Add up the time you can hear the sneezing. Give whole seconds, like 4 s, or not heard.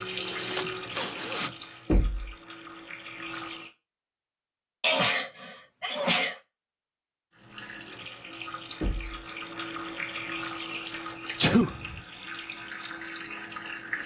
4 s.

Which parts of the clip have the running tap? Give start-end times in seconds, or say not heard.
0.0-3.7, 7.3-14.0.